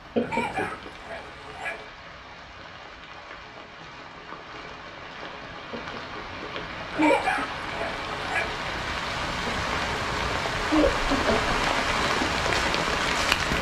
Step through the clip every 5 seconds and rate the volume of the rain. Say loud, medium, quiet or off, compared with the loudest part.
quiet, medium, loud.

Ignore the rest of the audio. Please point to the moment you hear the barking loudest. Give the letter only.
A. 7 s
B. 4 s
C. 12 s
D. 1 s
A.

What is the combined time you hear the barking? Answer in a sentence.
The barking can be heard for 3 seconds in total.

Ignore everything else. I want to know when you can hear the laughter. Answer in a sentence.
You can hear the laughter from 0.1 to 0.9 s, from 5.7 to 7.5 s and from 9.4 to 11.4 s.